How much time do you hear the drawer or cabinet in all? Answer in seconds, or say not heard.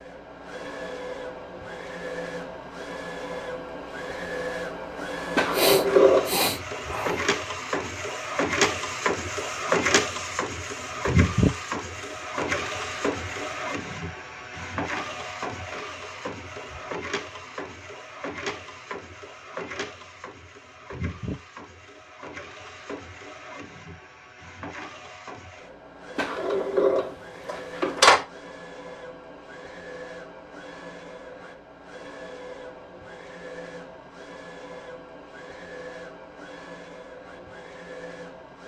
3 s.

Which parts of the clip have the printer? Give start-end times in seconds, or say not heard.
0.0-38.6.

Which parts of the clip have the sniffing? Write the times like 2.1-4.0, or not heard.
5.5-7.2.